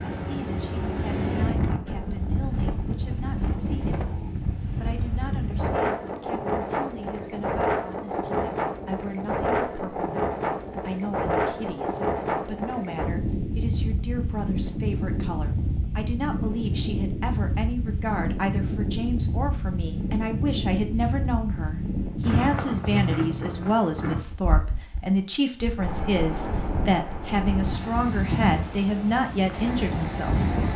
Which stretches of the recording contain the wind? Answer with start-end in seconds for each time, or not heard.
0.0-30.7.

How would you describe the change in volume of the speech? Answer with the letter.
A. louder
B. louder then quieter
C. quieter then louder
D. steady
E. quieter
A.